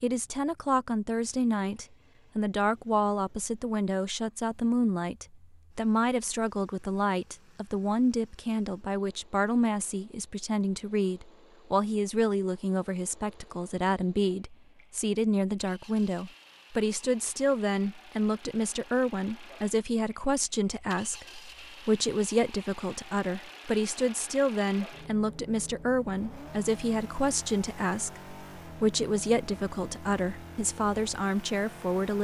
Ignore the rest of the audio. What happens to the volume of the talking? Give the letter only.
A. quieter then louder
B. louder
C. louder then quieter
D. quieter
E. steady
E.